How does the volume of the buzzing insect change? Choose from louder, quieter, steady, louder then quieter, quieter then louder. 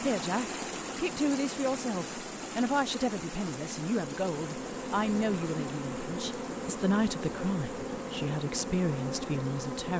louder.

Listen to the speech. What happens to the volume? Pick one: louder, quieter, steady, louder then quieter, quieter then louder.
steady.